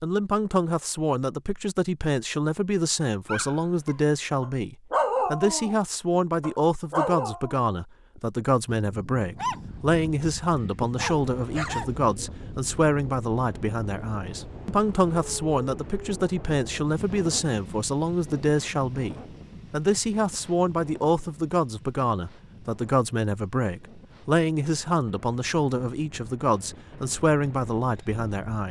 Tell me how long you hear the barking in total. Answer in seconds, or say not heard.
7 s.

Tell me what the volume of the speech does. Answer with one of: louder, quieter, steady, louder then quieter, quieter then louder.
steady.